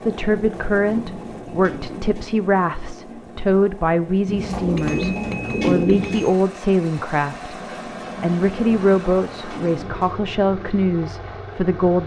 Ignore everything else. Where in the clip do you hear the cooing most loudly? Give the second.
6 s.